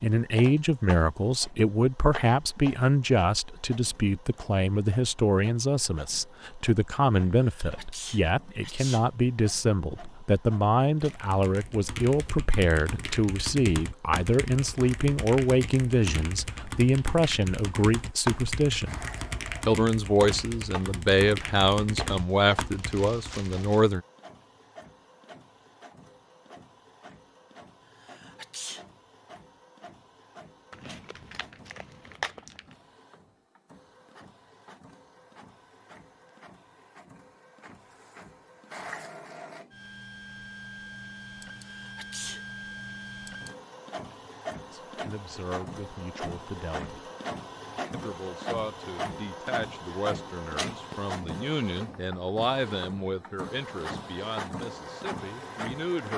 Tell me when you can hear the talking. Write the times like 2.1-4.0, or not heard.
0.0-19.0, 19.6-24.0, 44.7-47.1, 47.9-56.1.